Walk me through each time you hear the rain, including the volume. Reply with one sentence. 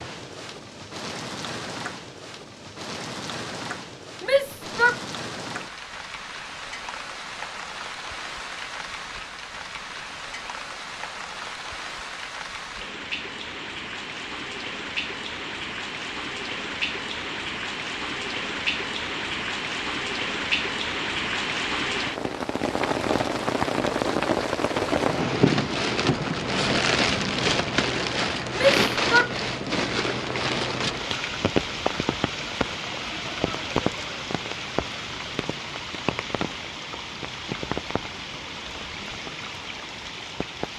You can hear the rain from 0.0 to 40.7 s, getting louder then quieter.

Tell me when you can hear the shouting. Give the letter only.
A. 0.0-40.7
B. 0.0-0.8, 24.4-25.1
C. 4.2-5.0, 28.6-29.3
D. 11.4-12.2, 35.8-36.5
C.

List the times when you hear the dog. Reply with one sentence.
You can't hear the dog here.